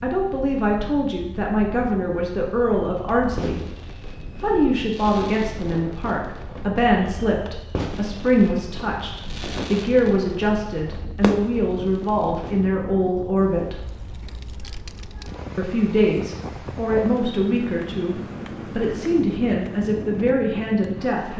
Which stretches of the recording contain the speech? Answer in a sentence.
The speech can be heard from 0.0 to 13.8 s and from 15.6 to 21.3 s.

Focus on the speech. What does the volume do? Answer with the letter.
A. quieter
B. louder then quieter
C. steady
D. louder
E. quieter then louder
C.